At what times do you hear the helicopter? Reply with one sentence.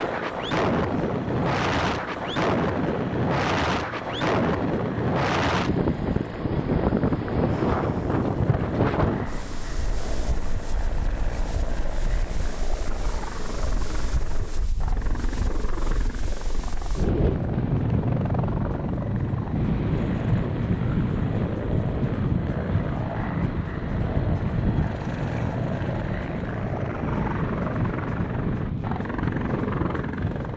You can hear the helicopter from 0.0 to 30.5 s.